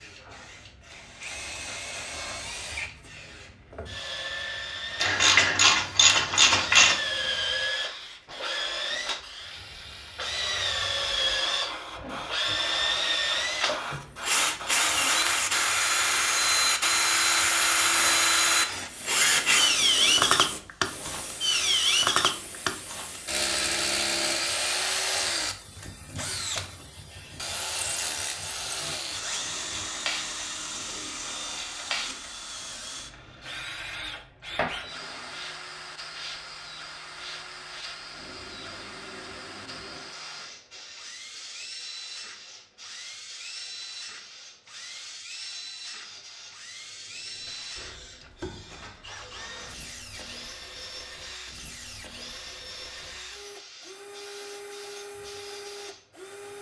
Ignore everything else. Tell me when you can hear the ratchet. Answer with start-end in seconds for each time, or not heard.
5.0-7.0.